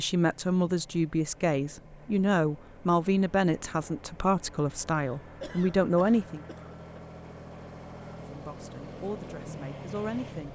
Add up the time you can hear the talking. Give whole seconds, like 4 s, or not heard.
9 s.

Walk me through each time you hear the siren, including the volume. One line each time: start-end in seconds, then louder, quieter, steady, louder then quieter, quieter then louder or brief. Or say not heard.
not heard.